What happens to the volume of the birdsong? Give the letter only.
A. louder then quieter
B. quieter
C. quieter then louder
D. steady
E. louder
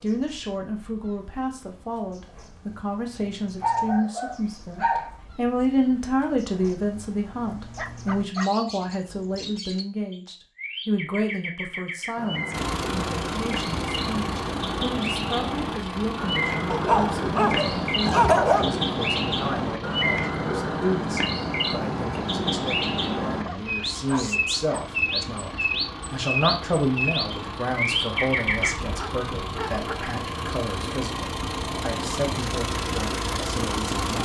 E.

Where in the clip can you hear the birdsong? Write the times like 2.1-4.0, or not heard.
0.0-28.7.